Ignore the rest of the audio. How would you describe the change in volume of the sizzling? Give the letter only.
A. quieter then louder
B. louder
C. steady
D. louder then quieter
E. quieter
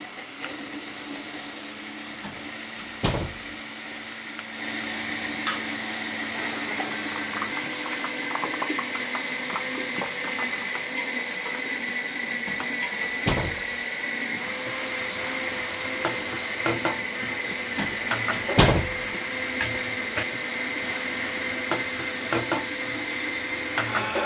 B.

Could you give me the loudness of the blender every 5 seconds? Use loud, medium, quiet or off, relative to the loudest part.
medium, loud, loud, loud, loud.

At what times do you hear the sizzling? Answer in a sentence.
You can hear the sizzling from 0.0 to 24.2 s.